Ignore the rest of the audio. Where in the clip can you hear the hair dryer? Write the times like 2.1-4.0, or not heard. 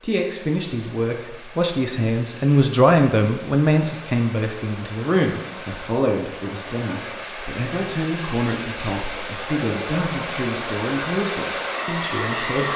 0.0-12.7.